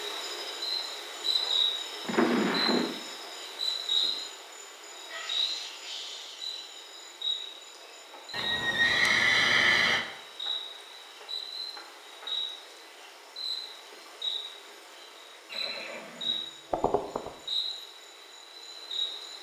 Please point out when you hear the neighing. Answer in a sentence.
The neighing can be heard from 2.0 to 2.9 s, from 8.3 to 10.1 s and from 15.5 to 17.3 s.